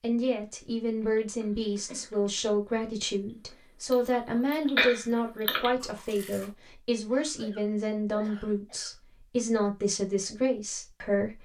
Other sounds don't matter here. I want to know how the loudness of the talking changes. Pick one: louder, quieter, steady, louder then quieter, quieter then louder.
steady.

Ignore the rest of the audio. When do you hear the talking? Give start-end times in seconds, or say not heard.
0.0-11.4.